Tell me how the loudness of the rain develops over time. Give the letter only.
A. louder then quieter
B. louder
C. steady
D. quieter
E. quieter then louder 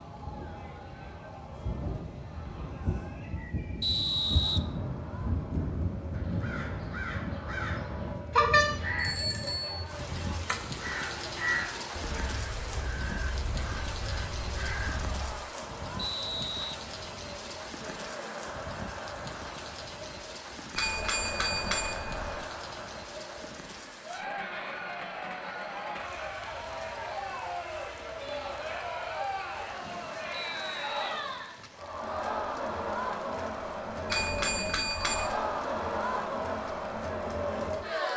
D.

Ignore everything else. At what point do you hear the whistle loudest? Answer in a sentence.
The loudest moment of the whistle is at 4 seconds.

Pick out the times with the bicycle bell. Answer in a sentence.
You can hear the bicycle bell from 8.3 to 9.8 s, from 20.8 to 22.4 s and from 34.0 to 35.4 s.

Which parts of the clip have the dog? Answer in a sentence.
The dog can't be heard in this clip.